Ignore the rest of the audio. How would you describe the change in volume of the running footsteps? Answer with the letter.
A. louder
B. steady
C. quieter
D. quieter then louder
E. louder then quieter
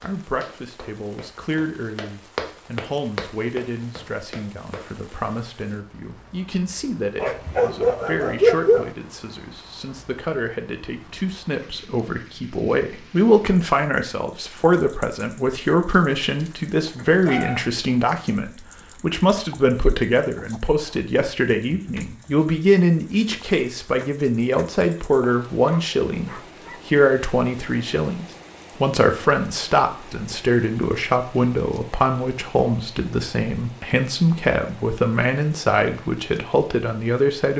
E.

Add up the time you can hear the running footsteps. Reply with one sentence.
You can hear the running footsteps for 5 seconds altogether.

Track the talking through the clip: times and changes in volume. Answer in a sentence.
The talking can be heard from 0.0 to 37.5 s, getting louder.